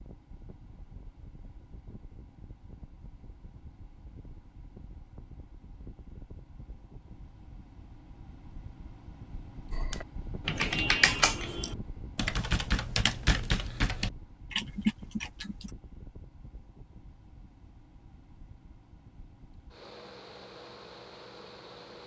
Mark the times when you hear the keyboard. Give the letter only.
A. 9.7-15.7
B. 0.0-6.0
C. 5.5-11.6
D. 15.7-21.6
A.